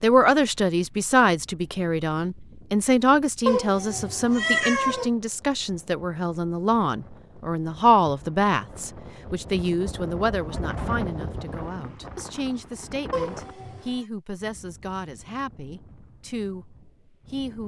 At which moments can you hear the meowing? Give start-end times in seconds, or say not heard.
3.5-5.1, 13.1-14.0.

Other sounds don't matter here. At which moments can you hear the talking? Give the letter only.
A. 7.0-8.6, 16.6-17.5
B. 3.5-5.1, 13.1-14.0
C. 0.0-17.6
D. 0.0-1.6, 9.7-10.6
C.